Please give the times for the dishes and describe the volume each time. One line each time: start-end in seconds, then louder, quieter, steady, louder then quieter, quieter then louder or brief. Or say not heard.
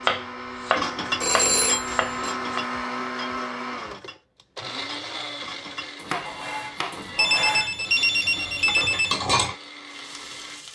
0.7-9.6 quieter then louder.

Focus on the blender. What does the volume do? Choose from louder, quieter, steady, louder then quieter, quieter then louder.
quieter.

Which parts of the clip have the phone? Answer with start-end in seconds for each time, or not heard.
1.2-2.4, 7.2-9.2.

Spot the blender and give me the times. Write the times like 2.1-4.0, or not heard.
0.0-10.7.